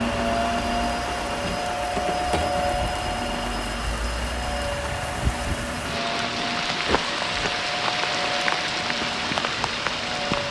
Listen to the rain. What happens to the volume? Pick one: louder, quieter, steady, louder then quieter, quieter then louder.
louder.